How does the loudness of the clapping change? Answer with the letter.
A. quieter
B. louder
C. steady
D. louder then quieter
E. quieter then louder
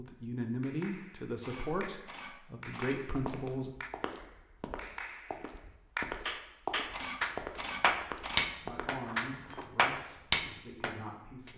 B.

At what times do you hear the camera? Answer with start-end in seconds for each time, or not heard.
1.4-3.0, 6.9-8.5.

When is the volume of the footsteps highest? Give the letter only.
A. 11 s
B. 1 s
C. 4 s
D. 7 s
D.